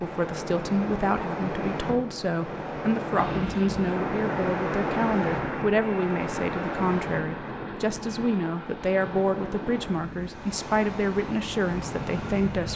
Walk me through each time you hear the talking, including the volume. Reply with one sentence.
The talking can be heard from 0.0 to 12.7 s, at a steady volume.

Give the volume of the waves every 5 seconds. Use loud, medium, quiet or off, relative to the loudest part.
loud, loud, medium.